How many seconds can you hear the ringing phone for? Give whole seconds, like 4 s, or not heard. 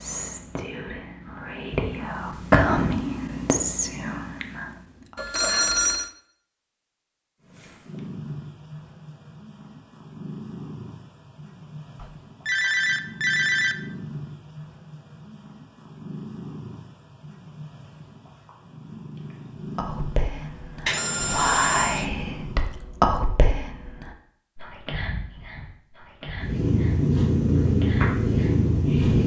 4 s.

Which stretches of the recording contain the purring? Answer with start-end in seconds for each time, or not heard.
7.4-22.8, 26.4-29.2.